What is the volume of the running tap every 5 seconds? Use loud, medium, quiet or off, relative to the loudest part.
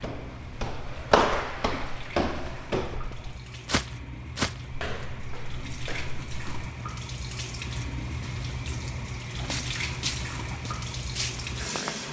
medium, loud, loud.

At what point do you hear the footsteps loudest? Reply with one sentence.
The loudest moment of the footsteps is at 1 second.